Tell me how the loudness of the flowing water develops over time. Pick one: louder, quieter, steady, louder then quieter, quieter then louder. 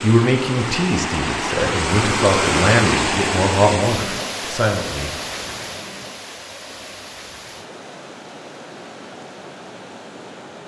quieter.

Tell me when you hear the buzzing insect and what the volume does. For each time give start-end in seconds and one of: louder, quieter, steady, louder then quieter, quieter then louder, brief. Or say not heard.
not heard.